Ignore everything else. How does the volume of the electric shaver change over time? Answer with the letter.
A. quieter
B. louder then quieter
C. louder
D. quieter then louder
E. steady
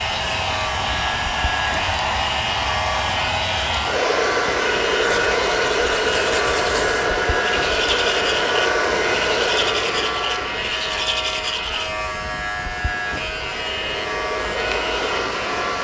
E.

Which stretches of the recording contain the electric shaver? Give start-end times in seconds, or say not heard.
0.0-15.8.